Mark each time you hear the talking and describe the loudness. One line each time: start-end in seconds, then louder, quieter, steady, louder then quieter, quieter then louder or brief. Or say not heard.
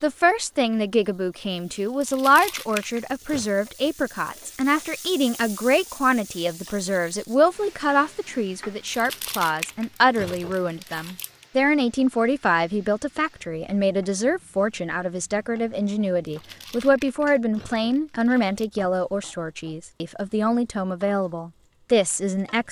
0.0-22.6 steady.